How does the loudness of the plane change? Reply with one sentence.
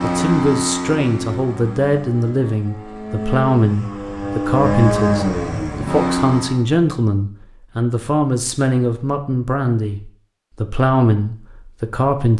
The loudness of the plane goes down, then up.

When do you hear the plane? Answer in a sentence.
You can hear the plane from 0.0 to 6.6 s.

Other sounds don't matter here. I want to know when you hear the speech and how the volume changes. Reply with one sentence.
The speech can be heard from 0.0 to 12.3 s, at a steady volume.